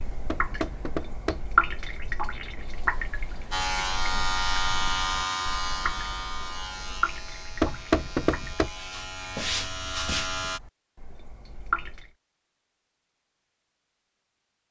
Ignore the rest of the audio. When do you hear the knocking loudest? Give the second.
8 s.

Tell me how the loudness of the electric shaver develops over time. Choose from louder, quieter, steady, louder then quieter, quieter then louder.
quieter then louder.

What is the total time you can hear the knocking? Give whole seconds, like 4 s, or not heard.
2 s.